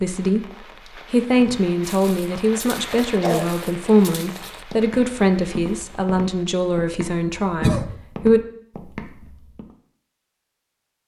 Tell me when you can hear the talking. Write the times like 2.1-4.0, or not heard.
0.0-8.4.